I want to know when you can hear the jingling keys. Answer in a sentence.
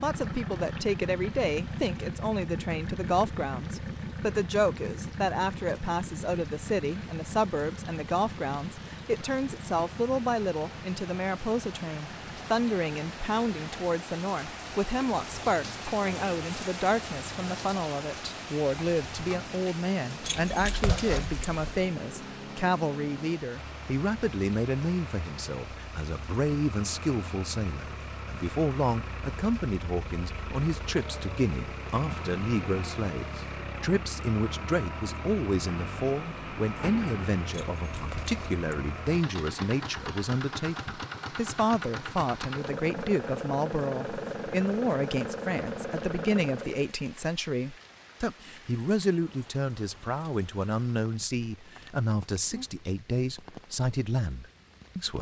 The jingling keys can be heard from 20.2 to 21.9 s and from 37.5 to 38.6 s.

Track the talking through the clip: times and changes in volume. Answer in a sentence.
The talking can be heard from 0.0 to 55.1 s, at a steady volume.